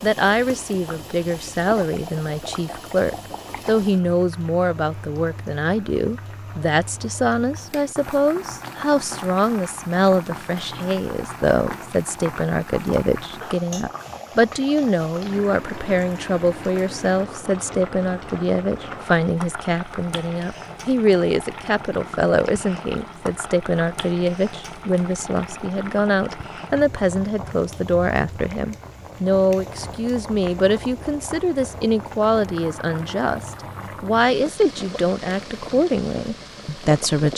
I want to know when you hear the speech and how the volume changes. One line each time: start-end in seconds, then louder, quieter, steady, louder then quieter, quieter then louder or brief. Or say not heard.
0.0-37.3 steady.